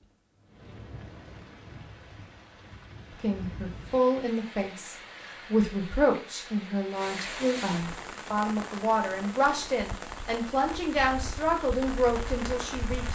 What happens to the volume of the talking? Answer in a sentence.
The loudness of the talking stays about the same.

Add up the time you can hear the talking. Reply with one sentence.
The talking can be heard for 10 seconds in total.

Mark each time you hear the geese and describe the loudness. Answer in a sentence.
You can't hear the geese here.